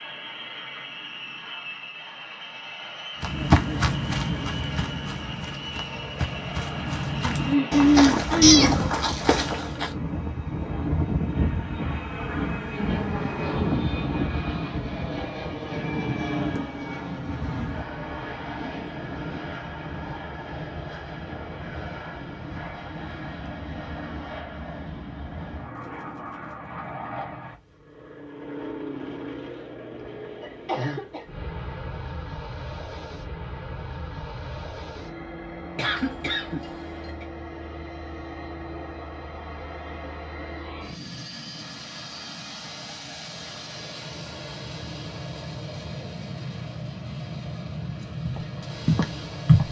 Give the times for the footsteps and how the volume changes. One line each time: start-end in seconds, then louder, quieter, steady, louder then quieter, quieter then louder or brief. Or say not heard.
3.2-9.9 quieter then louder
48.2-49.6 brief.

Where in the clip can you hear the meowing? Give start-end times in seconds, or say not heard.
8.4-9.0.